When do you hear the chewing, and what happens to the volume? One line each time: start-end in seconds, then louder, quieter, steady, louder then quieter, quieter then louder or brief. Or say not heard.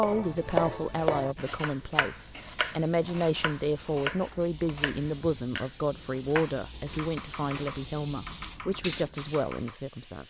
not heard.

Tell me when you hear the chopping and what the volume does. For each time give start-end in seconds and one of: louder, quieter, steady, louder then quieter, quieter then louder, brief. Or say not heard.
0.0-9.8 quieter.